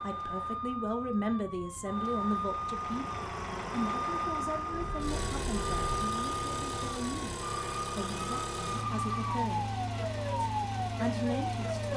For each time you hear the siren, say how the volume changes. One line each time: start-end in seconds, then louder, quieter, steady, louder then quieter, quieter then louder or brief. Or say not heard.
0.0-11.9 steady.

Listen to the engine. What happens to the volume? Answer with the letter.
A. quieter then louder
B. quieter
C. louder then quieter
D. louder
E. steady
E.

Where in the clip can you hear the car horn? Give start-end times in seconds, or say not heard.
4.7-6.1.